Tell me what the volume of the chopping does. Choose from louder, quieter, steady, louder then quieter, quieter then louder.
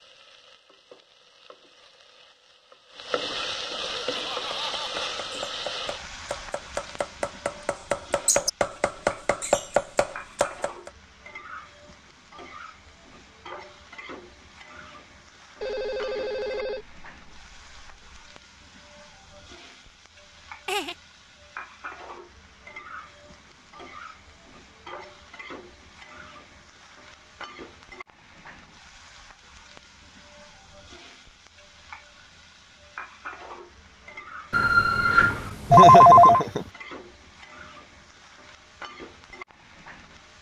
louder.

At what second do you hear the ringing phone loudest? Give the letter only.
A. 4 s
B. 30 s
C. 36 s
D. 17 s
C.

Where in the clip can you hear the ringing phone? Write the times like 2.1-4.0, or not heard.
15.6-18.2, 34.5-36.5.